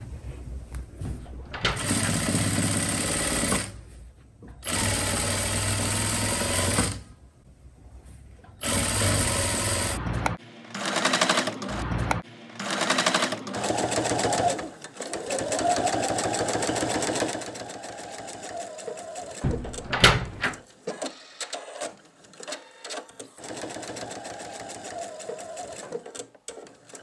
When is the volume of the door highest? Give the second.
20 s.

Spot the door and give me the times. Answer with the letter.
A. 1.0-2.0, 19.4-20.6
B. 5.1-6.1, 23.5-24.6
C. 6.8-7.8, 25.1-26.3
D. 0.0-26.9
A.